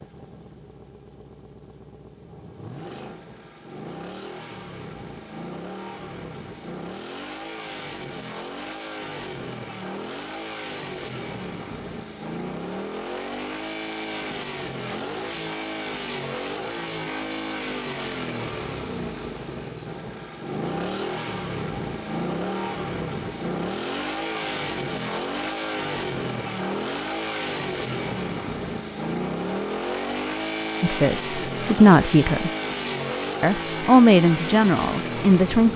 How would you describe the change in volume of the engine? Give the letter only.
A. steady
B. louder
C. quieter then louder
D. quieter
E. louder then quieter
B.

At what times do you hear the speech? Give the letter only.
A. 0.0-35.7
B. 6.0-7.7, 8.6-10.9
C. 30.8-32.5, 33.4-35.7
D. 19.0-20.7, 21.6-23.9
C.